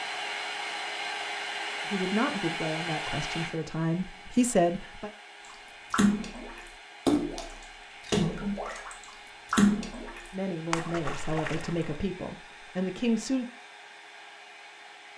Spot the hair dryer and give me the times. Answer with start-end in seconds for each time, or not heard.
0.0-15.1.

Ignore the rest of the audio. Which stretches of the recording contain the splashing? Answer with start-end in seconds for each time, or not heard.
5.5-12.0.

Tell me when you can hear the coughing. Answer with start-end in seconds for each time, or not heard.
not heard.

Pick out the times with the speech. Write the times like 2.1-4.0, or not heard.
1.9-5.1, 10.3-13.4.